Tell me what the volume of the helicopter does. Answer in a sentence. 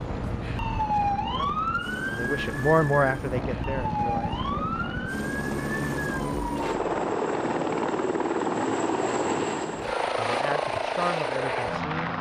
The volume of the helicopter goes up.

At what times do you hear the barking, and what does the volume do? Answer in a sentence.
The barking can't be heard in this clip.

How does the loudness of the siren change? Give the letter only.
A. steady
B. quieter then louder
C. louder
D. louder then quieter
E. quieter
E.